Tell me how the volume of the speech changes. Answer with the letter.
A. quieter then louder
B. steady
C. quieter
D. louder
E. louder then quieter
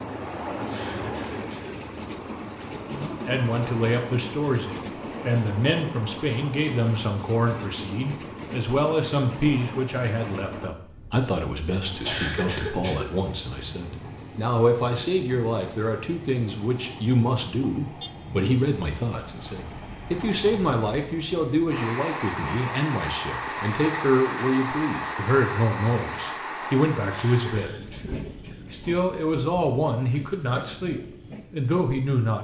B.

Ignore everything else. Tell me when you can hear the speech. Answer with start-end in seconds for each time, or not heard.
2.9-28.0, 28.7-32.3.